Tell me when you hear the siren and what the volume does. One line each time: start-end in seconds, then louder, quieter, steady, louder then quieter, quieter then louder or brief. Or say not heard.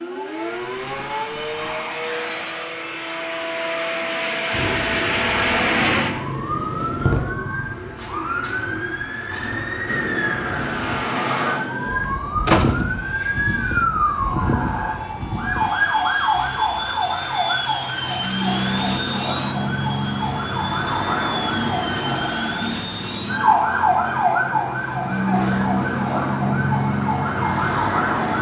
0.0-28.3 louder.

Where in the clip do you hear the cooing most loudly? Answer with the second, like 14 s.
7 s.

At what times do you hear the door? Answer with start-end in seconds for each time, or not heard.
12.4-13.3.